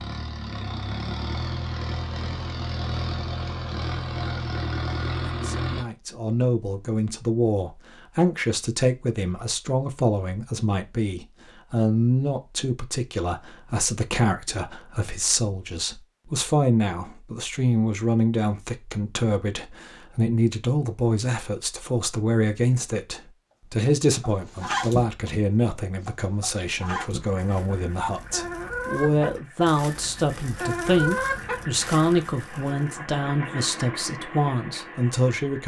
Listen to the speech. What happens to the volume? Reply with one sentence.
The loudness of the speech stays about the same.